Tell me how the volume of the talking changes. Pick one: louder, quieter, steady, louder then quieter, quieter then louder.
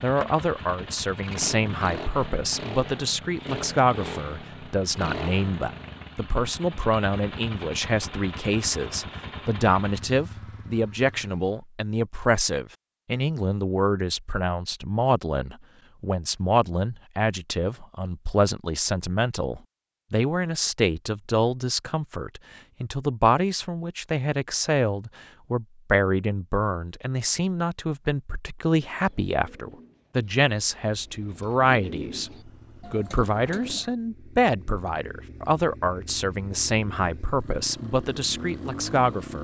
steady.